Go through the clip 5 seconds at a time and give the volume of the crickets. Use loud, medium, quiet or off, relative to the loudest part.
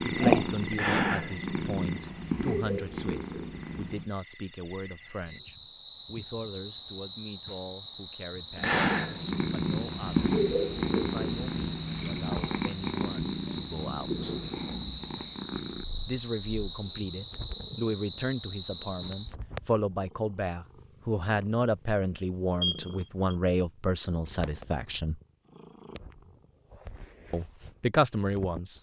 medium, loud, loud, loud, off, off.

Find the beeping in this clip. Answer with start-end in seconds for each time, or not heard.
22.6-23.4.